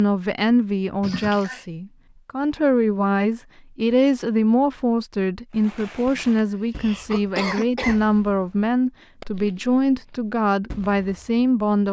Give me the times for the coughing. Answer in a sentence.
The coughing can be heard from 1.0 to 1.6 s and from 6.0 to 8.4 s.